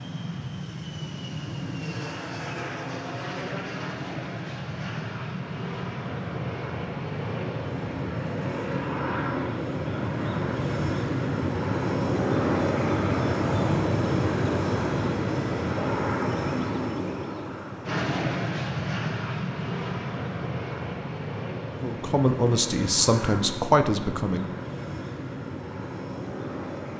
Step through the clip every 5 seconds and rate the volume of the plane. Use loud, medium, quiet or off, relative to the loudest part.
medium, medium, loud, loud, medium, medium.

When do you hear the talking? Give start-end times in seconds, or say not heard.
21.8-24.5.